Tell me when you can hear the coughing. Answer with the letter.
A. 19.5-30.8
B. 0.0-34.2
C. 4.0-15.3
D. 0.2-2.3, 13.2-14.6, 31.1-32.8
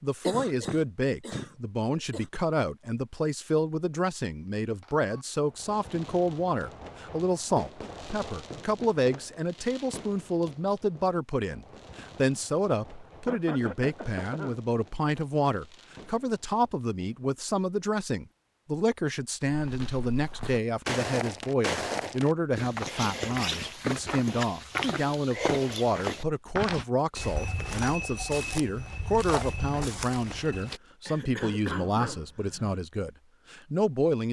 D.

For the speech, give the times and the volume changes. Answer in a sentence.
You can hear the speech from 0.0 to 34.2 s, at a steady volume.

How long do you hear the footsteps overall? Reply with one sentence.
You can hear the footsteps for 11 seconds altogether.